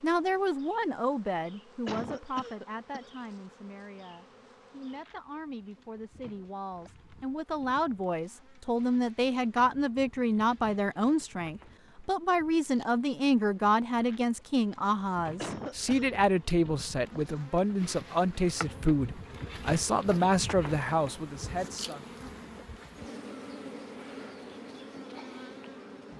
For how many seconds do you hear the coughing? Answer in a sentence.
The coughing can be heard for 2 seconds in total.